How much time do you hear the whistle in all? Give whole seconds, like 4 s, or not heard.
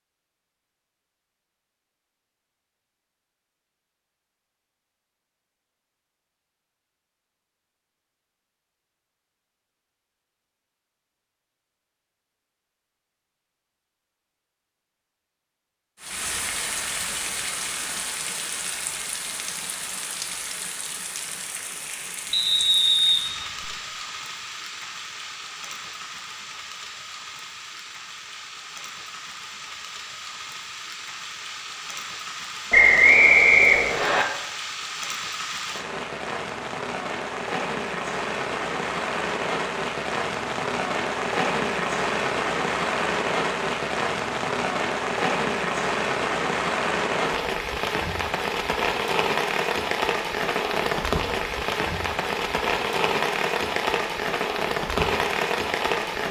3 s.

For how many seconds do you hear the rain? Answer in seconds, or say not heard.
40 s.